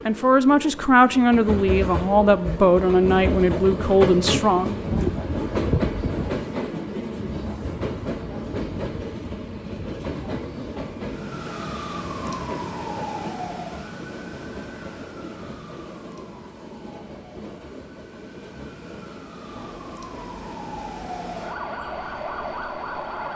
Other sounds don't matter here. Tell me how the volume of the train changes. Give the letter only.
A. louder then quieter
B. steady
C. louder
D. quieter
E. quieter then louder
D.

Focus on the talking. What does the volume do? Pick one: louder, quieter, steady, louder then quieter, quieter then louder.
steady.